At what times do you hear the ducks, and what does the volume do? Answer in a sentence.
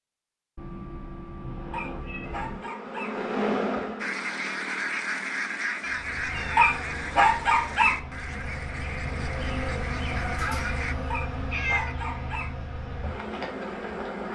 You can hear the ducks from 4.0 to 10.9 s, getting quieter.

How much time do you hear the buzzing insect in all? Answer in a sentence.
You can hear the buzzing insect for 11 seconds altogether.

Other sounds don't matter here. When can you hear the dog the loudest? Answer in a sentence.
The volume of the dog peaks at 7 seconds.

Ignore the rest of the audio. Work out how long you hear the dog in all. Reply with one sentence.
The dog can be heard for 4 seconds in total.